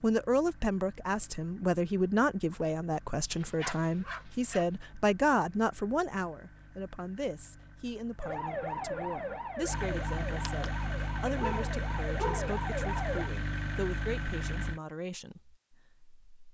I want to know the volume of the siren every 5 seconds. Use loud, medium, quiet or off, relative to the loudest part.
off, loud, loud, off.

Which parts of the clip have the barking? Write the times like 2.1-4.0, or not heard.
3.3-4.7, 11.3-12.6.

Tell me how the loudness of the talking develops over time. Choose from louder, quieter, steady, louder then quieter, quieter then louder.
quieter.